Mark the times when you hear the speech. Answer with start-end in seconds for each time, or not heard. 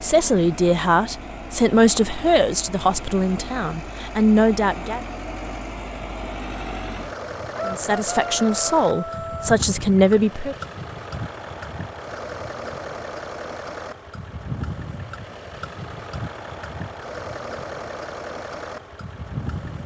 0.0-5.0, 7.7-10.6.